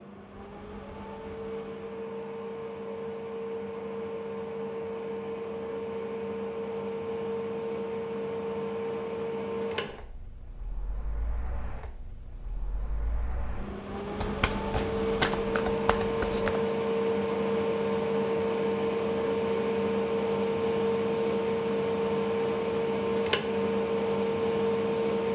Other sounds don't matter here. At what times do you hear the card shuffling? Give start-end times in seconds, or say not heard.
14.2-16.6.